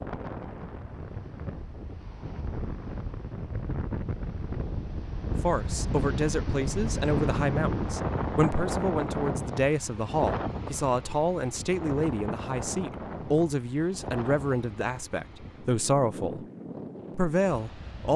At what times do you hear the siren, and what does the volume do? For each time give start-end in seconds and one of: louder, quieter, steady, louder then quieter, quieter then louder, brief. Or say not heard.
not heard.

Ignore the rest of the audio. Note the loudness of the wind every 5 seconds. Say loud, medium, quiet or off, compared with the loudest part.
medium, loud, medium, medium.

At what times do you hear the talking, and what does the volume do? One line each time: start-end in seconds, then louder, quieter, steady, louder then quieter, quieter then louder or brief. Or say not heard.
5.3-16.4 steady
17.1-18.1 brief.